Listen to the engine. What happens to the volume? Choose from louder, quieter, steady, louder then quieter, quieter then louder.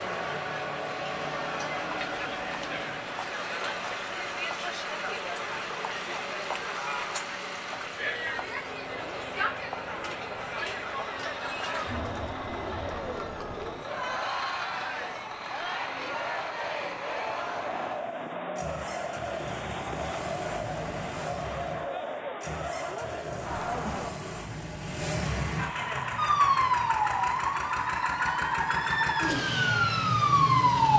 louder.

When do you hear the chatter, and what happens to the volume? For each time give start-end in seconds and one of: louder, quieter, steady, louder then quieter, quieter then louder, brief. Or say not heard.
0.0-24.1 steady.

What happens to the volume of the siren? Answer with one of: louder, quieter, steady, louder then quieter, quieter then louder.
quieter then louder.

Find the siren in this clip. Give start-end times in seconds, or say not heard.
26.1-30.9.